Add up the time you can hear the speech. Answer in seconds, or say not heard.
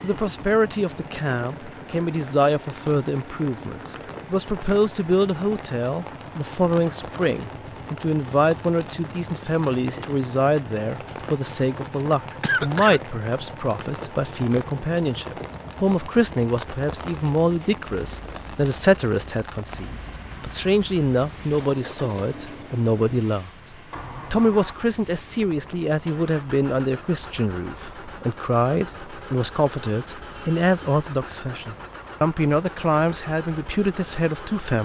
34 s.